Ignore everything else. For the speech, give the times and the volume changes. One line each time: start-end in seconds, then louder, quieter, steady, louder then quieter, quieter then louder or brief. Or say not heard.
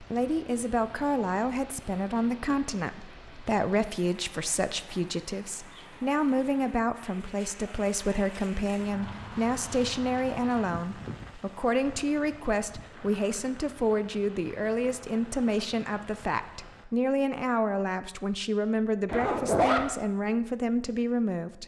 0.0-21.6 steady.